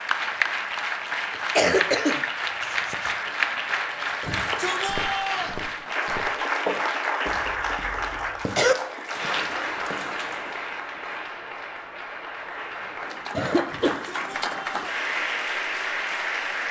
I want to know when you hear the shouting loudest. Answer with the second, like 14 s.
5 s.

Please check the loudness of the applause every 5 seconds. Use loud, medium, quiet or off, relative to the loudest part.
loud, loud, medium, loud.